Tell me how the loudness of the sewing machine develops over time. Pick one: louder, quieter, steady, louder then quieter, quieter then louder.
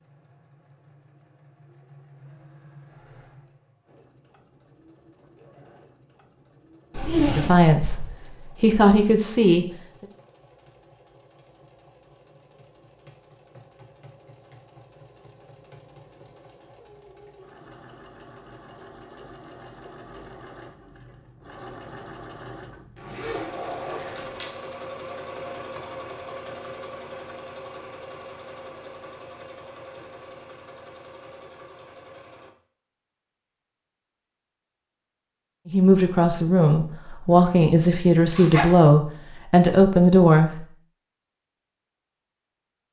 louder.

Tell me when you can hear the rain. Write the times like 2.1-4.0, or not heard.
not heard.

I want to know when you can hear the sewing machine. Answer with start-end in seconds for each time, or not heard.
0.0-32.5.